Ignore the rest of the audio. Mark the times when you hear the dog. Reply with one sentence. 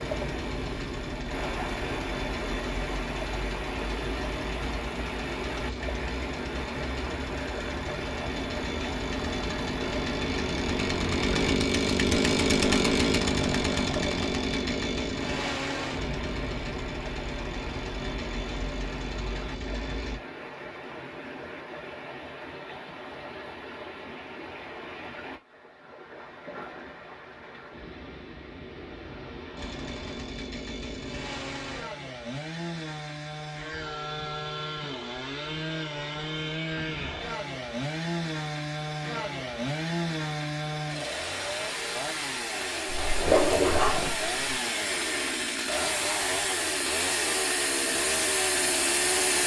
You can hear the dog from 42.9 to 44.3 s.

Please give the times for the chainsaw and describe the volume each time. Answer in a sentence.
You can hear the chainsaw from 0.0 to 20.2 s, getting louder then quieter; and from 29.6 to 49.4 s, getting louder.